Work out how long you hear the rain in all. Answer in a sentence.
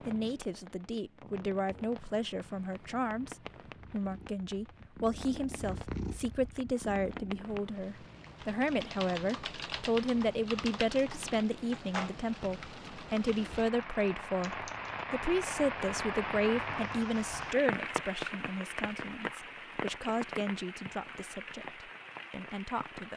The rain can be heard for 23 seconds in total.